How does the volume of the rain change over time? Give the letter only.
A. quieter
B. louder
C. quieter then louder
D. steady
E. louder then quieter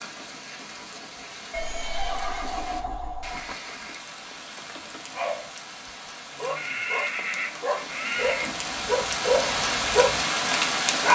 B.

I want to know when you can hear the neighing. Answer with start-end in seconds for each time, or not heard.
1.5-3.5, 6.5-8.6.